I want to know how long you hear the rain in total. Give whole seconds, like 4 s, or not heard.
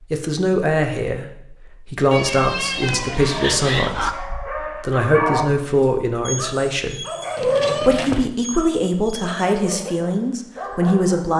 not heard.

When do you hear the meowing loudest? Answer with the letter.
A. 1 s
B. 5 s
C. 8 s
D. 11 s
C.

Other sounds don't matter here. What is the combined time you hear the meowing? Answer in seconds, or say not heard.
3 s.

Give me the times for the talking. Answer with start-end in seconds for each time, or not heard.
0.1-7.0, 7.8-11.3.